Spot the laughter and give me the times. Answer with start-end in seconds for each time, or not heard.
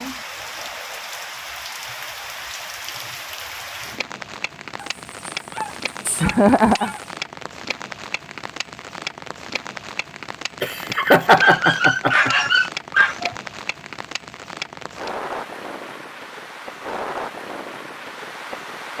6.2-6.9, 10.6-12.5.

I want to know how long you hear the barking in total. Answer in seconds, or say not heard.
4 s.